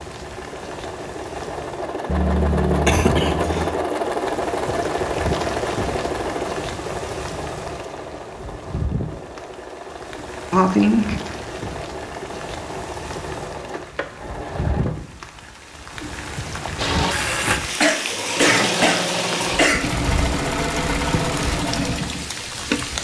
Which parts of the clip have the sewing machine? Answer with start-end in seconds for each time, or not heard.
0.0-15.1, 16.8-22.9.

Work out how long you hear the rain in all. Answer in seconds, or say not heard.
23 s.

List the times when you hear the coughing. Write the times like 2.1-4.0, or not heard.
2.0-3.8, 10.5-11.2, 17.8-19.9.